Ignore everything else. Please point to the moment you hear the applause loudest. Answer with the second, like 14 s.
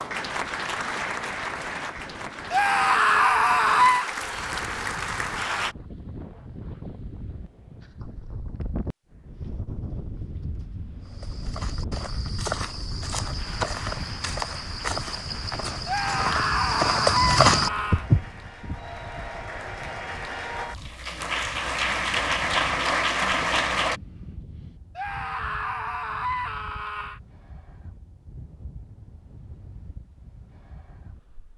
23 s.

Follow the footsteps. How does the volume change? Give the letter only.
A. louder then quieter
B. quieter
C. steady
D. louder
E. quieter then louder
D.